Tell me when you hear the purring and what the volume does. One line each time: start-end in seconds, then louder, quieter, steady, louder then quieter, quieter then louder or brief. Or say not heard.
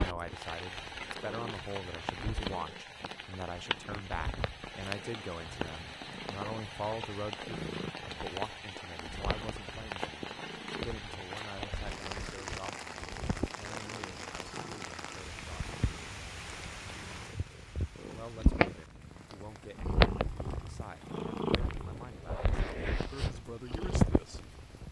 0.0-24.8 louder.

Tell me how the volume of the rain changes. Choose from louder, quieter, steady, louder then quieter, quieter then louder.
quieter.